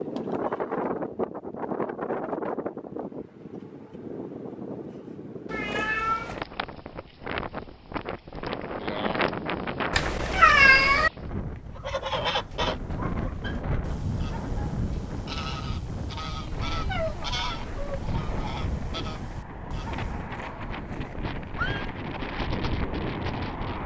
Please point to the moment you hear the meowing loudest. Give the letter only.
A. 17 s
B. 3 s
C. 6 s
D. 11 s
D.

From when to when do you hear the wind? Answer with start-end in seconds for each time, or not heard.
0.0-23.8.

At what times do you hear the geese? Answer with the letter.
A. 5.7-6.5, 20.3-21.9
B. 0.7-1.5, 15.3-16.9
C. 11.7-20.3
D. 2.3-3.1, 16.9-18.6
C.